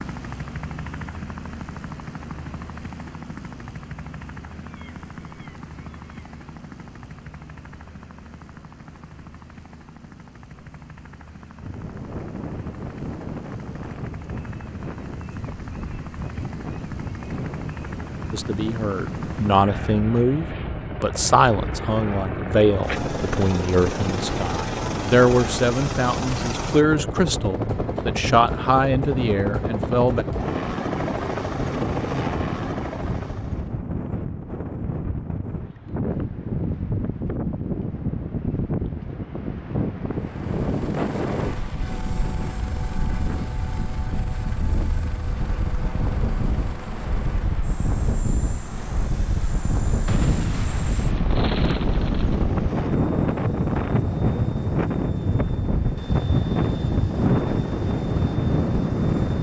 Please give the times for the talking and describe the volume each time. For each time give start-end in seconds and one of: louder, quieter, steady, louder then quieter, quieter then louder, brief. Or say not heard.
18.3-30.2 steady.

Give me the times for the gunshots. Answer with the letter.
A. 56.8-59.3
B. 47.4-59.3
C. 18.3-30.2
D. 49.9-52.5
D.